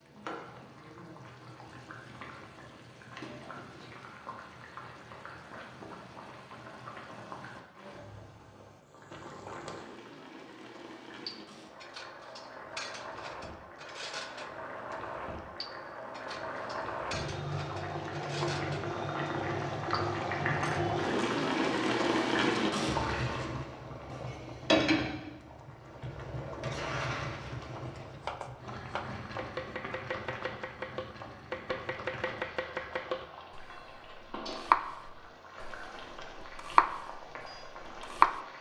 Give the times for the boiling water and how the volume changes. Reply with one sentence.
The boiling water can be heard from 0.0 to 38.5 s, getting louder then quieter.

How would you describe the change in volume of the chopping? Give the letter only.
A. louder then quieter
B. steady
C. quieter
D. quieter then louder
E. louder
E.